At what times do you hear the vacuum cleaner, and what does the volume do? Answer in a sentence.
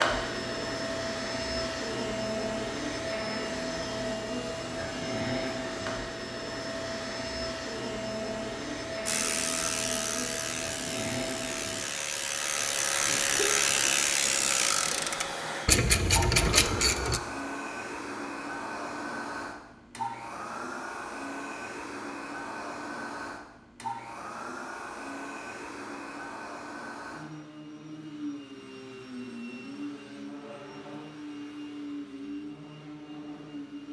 The vacuum cleaner can be heard from 0.0 to 33.8 s, getting quieter.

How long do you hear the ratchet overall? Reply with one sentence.
You can hear the ratchet for 8 seconds altogether.